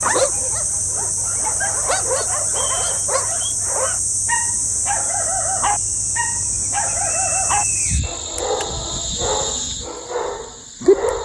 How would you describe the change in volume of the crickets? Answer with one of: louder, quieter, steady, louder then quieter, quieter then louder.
steady.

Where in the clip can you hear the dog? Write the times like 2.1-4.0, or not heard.
0.0-11.2.